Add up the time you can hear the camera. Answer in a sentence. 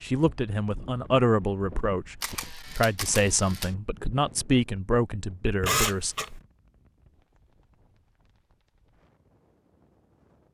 The camera can be heard for 2 seconds in total.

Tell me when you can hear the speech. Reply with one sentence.
The speech can be heard from 0.0 to 6.2 s.